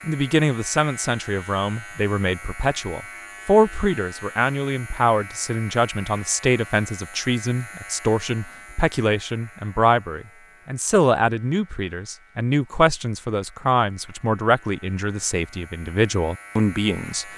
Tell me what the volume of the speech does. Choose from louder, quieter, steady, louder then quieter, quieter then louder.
steady.